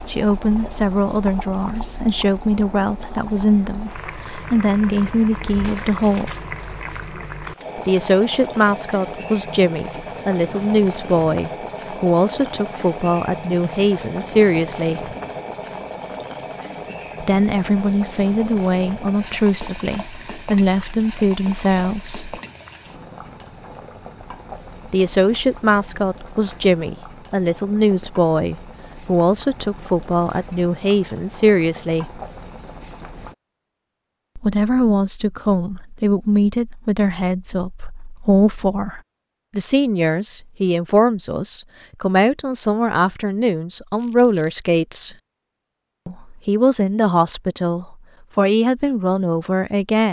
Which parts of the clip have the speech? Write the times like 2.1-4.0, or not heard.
0.1-6.3, 7.8-15.1, 17.2-22.4, 24.9-32.2, 34.4-45.1, 46.0-50.0.